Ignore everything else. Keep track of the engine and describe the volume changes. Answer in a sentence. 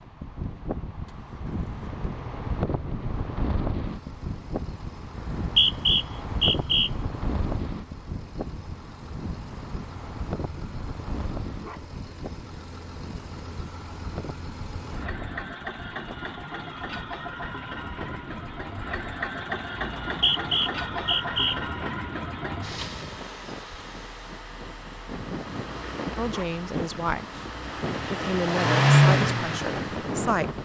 The volume of the engine goes up.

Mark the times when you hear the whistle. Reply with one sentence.
The whistle can be heard from 5.2 to 6.9 s and from 20.1 to 21.6 s.